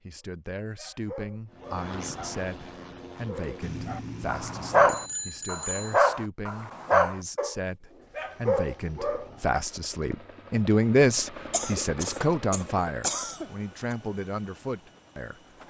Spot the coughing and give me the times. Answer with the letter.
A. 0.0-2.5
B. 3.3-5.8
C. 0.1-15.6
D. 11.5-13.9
D.